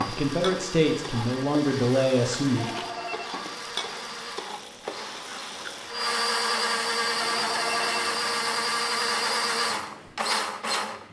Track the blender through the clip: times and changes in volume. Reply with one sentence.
The blender can be heard from 0.0 to 11.0 s, getting louder.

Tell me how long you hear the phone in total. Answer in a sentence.
The phone can be heard for 2 seconds in total.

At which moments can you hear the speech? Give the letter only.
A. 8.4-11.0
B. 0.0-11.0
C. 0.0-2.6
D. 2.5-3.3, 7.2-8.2
C.